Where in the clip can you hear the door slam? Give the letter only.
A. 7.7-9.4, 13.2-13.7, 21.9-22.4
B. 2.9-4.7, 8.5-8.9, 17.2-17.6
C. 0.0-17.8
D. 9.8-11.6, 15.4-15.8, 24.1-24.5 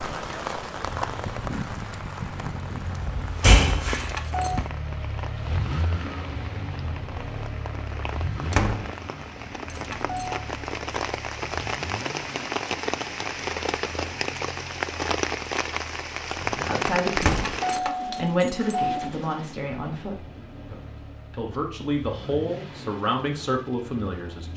B.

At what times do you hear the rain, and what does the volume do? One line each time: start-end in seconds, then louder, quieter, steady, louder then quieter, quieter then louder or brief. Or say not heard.
0.0-17.8 quieter then louder.